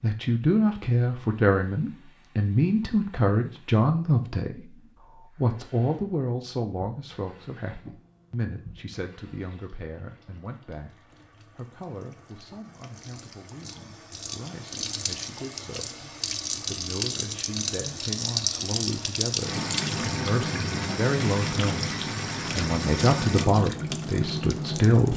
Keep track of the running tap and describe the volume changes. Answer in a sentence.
The volume of the running tap goes up.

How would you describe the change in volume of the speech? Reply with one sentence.
The volume of the speech goes down, then up.